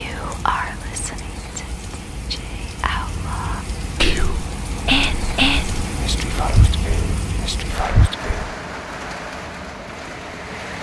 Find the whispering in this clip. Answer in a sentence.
You can hear the whispering from 0.0 to 8.6 s.